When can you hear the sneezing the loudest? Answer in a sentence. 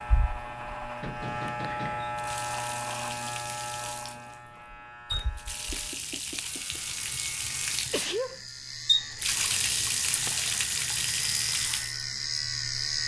The loudest moment of the sneezing is at 8 seconds.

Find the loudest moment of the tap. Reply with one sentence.
The volume of the tap peaks at 9 seconds.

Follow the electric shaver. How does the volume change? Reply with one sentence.
The volume of the electric shaver goes down, then up.